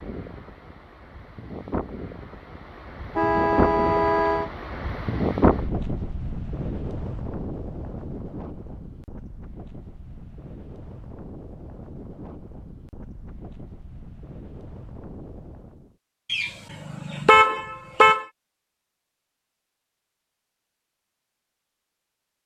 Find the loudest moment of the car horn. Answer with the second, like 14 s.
17 s.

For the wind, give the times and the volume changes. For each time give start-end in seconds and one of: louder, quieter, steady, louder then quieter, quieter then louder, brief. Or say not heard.
0.0-15.9 louder then quieter.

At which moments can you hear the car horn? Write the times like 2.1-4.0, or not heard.
3.1-4.5, 16.3-18.2.